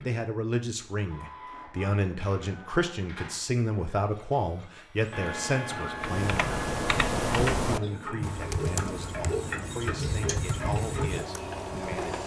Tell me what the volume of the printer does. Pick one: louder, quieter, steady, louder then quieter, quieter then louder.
louder.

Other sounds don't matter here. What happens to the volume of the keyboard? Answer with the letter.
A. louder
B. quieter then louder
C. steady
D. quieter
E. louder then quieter
D.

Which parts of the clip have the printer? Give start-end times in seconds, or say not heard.
0.0-12.2.